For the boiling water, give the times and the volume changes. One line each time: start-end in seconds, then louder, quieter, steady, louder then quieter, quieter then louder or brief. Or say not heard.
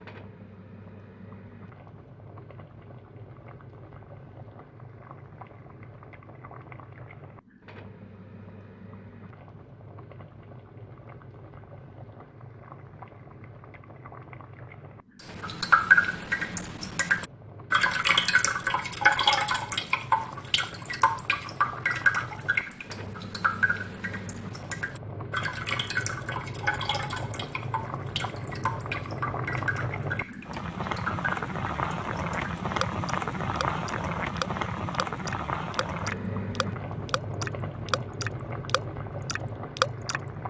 0.0-40.4 louder.